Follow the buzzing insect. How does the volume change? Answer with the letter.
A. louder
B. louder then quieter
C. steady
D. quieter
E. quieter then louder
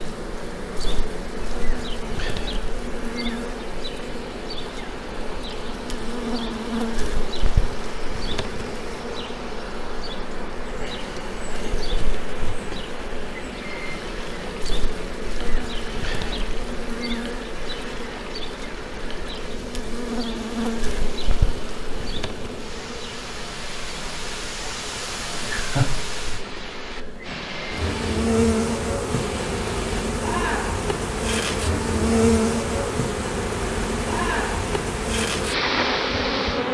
A.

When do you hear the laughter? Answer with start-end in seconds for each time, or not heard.
25.2-25.9.